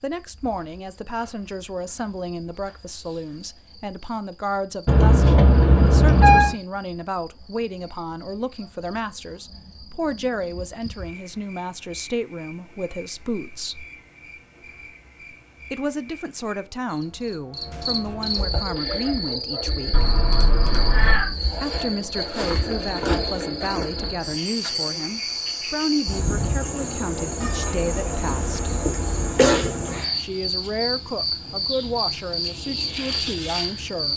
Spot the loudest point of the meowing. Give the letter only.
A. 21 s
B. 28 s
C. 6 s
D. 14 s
C.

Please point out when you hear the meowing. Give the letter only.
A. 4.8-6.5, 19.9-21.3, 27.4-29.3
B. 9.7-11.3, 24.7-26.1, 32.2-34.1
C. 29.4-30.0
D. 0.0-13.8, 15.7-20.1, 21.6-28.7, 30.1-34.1
A.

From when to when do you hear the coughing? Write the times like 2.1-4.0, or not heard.
29.4-30.0.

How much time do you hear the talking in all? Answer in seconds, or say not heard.
29 s.